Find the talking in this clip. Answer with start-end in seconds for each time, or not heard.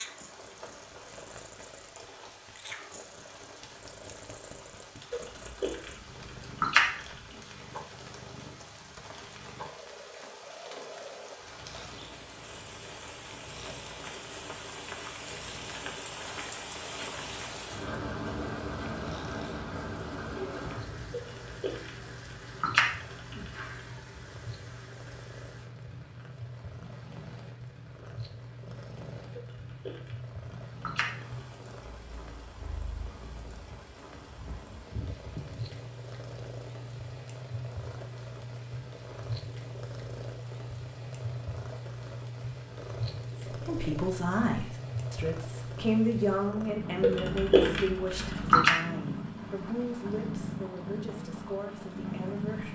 43.5-52.7.